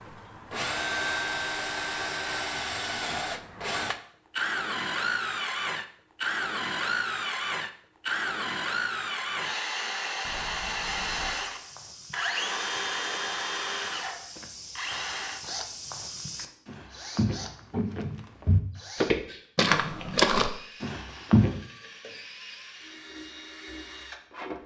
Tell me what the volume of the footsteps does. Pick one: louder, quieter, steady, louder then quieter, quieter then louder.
louder.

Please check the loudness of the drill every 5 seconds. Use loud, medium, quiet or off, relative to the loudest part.
loud, loud, loud, medium, quiet.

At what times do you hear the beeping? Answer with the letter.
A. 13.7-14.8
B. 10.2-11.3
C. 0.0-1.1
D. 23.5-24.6
B.